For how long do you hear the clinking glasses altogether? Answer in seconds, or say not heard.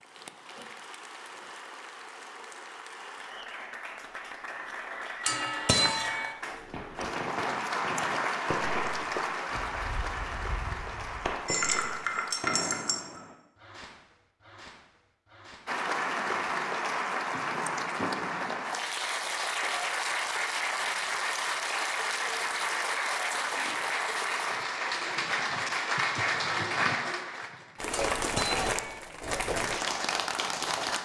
4 s.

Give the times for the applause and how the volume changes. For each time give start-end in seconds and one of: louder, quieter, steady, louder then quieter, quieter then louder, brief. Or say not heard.
0.0-12.6 louder then quieter
15.7-31.0 steady.